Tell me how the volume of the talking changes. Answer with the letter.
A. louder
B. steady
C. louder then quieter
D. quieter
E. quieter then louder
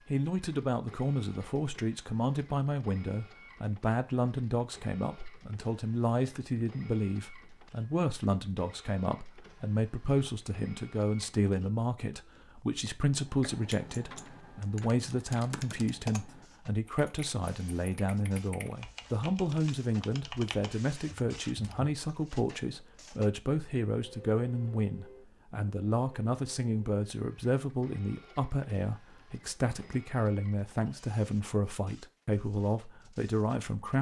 B.